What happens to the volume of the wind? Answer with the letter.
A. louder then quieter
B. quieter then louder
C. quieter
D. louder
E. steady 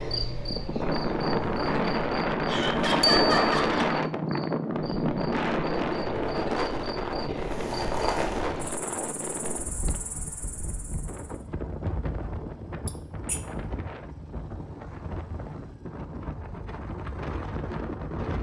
C.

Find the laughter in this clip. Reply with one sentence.
You can hear the laughter from 2.5 to 3.9 s and from 12.8 to 13.4 s.